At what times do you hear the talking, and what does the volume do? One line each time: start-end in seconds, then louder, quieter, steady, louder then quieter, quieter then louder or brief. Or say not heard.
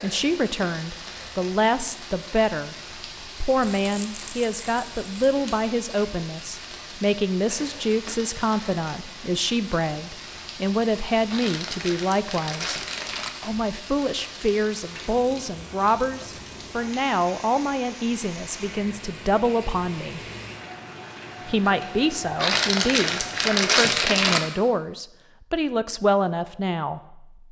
0.0-2.8 brief
3.4-12.8 steady
13.4-20.2 steady
21.4-27.4 steady.